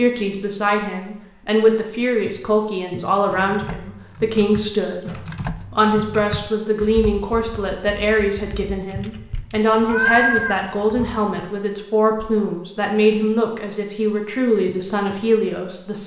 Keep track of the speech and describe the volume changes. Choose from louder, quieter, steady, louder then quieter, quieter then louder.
steady.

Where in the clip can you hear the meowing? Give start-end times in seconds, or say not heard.
9.8-11.1.